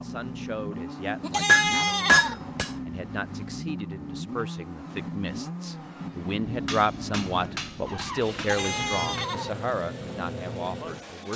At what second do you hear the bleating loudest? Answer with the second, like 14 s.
2 s.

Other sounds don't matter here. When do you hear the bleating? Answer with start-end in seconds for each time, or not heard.
1.2-2.4, 8.3-9.5.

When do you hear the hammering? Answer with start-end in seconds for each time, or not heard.
1.4-2.7, 6.4-9.3.